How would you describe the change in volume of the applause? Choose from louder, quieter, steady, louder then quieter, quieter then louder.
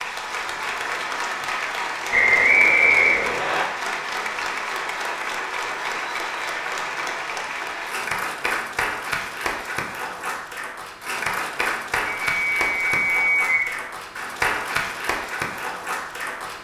steady.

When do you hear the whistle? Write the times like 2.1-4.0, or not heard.
2.1-3.6, 12.1-13.7.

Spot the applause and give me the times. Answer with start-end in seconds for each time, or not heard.
0.0-16.5.